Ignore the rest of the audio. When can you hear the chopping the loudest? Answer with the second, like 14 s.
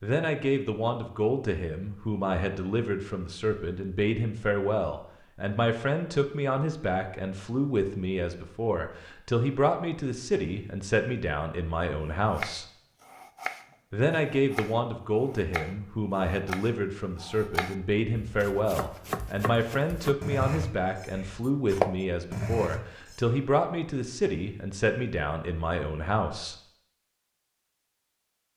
22 s.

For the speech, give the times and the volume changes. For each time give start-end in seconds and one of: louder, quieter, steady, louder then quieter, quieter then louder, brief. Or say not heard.
0.0-12.7 steady
13.9-26.6 steady.